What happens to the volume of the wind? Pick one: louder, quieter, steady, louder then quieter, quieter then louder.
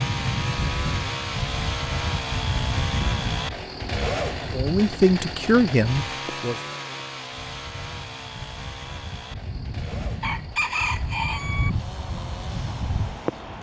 quieter then louder.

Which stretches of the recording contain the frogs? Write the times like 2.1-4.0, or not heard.
not heard.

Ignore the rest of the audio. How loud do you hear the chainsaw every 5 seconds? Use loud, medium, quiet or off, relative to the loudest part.
loud, medium, quiet.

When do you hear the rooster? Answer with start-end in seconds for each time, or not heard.
10.2-11.7.